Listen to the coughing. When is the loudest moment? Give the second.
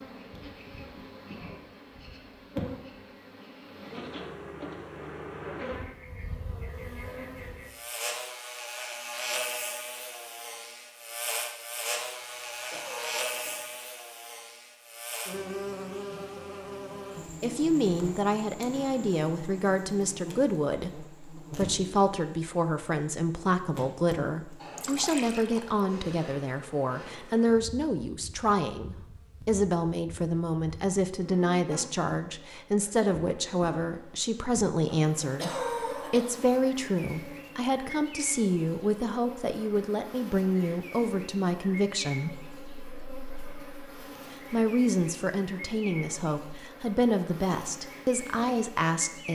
36 s.